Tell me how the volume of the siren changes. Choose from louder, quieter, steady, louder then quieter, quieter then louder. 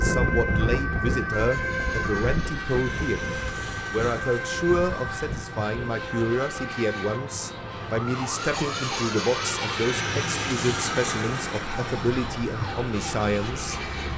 quieter.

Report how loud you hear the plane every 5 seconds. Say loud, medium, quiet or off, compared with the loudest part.
medium, loud, loud.